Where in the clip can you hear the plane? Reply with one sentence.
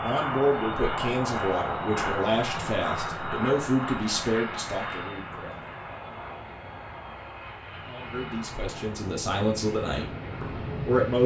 The plane can be heard from 0.0 to 11.2 s.